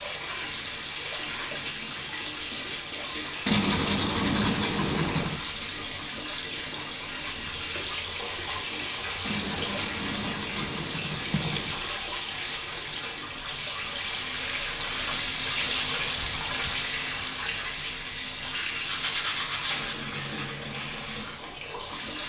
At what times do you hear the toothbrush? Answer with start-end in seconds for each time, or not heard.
3.5-5.4, 9.2-11.8, 18.4-19.9.